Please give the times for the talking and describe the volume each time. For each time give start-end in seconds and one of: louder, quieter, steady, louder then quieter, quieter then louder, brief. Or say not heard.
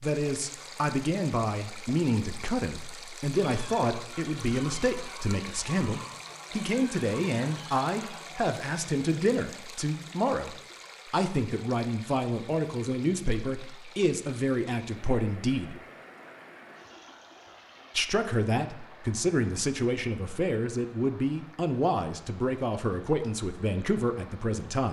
0.0-15.8 steady
17.9-24.8 steady.